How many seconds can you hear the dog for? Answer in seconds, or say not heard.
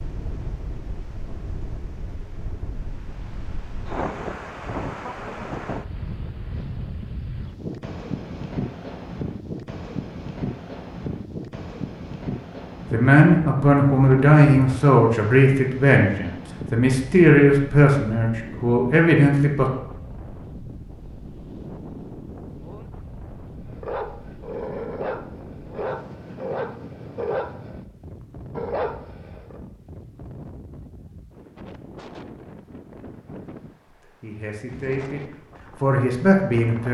6 s.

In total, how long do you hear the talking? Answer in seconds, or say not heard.
10 s.